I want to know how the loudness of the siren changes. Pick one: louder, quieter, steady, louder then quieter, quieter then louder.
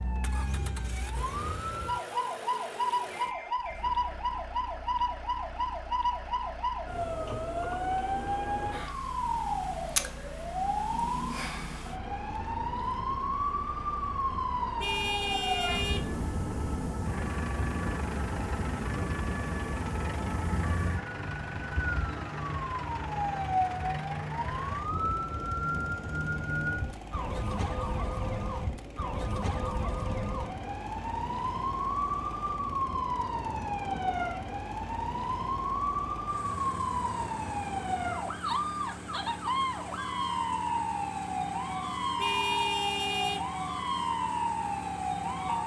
steady.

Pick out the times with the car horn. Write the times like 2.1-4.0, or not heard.
14.8-16.1, 42.1-43.4.